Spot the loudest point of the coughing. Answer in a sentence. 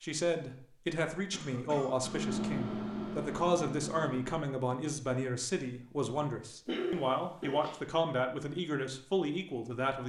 The loudest moment of the coughing is at 7 seconds.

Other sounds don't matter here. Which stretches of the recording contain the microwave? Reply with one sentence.
You can hear the microwave from 2.0 to 4.4 s.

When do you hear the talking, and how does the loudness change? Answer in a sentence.
The talking can be heard from 0.0 to 10.0 s, at a steady volume.